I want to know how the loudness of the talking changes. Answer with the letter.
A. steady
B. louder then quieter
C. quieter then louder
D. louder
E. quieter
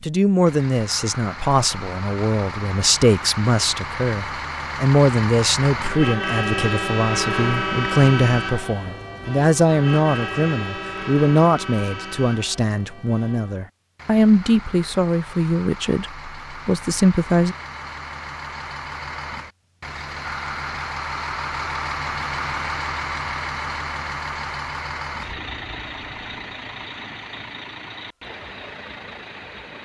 A.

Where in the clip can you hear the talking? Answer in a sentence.
The talking can be heard from 0.0 to 17.6 s.